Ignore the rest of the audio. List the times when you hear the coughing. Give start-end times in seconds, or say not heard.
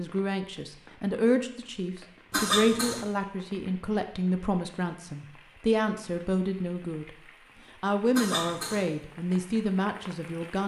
2.3-3.0, 8.2-8.8.